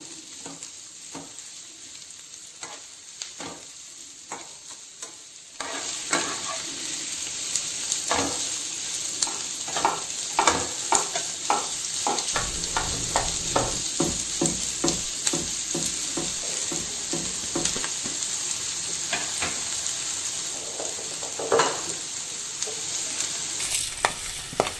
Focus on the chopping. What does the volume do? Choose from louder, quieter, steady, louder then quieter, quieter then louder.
quieter.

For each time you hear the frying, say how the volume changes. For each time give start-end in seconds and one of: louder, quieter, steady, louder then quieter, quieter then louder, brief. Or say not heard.
0.0-24.7 louder.